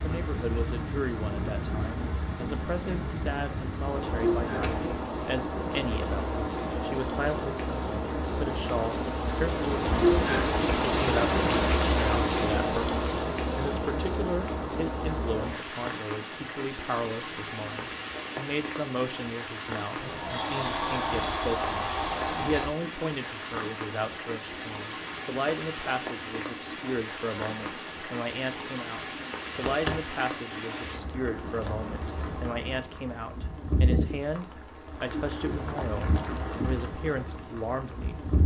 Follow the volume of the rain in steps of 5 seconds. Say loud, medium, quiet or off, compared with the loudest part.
medium, medium, loud, medium, medium, medium, medium, medium.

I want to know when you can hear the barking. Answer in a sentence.
The barking can't be heard in this clip.